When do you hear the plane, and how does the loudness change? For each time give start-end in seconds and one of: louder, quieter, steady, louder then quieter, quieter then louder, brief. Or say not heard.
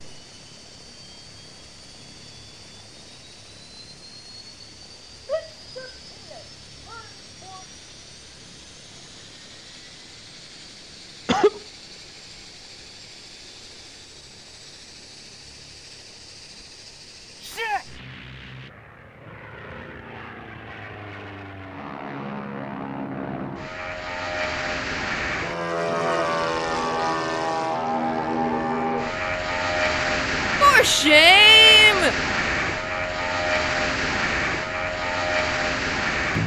0.0-36.4 louder.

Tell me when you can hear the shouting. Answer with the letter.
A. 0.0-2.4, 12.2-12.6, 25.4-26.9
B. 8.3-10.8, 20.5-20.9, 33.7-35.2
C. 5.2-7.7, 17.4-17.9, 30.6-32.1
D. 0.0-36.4
C.